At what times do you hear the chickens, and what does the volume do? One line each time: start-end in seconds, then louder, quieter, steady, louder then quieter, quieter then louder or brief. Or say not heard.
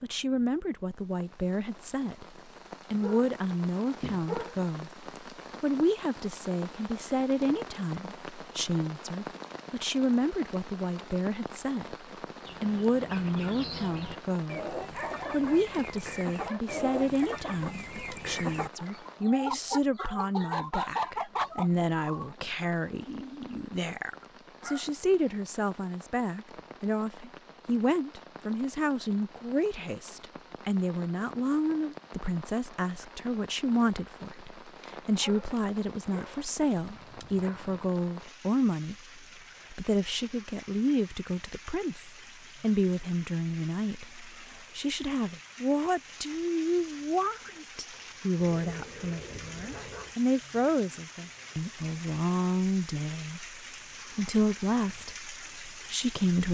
12.4-22.4 louder.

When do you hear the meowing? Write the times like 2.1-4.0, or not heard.
not heard.